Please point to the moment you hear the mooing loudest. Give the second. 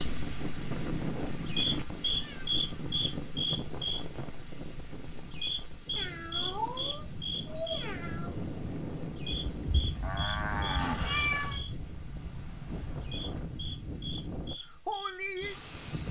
11 s.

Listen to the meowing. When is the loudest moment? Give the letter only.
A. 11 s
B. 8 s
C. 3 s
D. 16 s
A.